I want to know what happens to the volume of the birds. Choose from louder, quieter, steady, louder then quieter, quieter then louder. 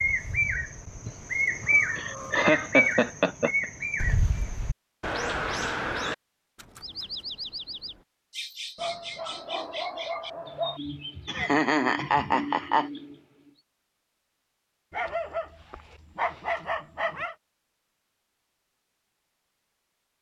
quieter.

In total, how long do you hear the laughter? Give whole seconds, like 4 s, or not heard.
3 s.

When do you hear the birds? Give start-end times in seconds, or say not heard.
0.0-13.6.